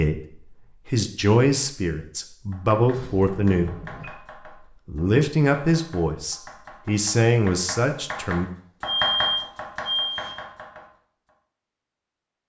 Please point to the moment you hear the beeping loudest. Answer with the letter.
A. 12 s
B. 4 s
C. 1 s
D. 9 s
D.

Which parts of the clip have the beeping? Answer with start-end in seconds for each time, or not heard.
2.9-4.1, 8.8-10.3.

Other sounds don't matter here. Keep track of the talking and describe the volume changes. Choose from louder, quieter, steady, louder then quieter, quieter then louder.
steady.